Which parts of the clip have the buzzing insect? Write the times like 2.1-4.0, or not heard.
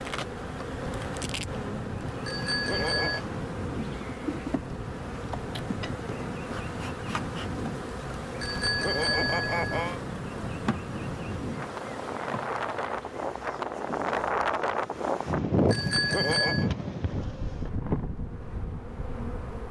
0.0-19.6.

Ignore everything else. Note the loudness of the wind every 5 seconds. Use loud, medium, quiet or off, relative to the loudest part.
medium, medium, loud, loud.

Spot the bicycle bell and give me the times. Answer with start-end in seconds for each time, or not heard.
2.2-3.2, 8.4-10.0, 15.7-16.7.